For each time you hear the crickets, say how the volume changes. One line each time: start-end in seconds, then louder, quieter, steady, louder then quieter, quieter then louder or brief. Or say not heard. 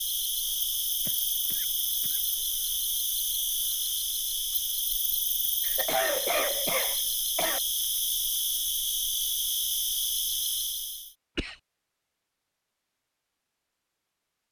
0.0-11.2 steady.